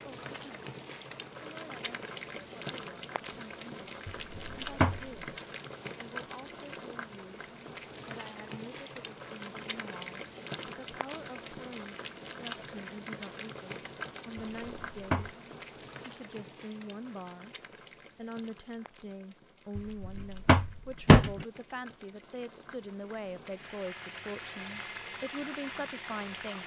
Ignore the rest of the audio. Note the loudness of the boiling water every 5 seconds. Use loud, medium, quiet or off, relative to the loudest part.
loud, loud, loud, medium, medium, loud.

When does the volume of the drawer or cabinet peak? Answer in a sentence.
The loudest moment of the drawer or cabinet is at 21 seconds.